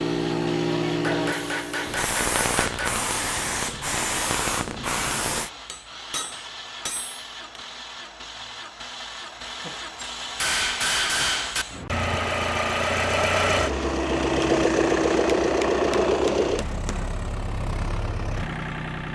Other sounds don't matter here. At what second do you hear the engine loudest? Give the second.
15 s.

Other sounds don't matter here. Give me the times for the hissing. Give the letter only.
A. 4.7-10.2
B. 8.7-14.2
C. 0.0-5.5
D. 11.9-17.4
C.